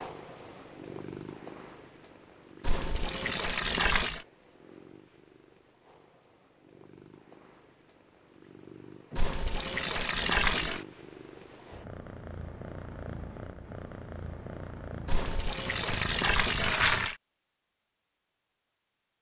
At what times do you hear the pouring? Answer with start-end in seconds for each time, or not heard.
2.6-4.2, 9.2-10.8, 15.1-17.1.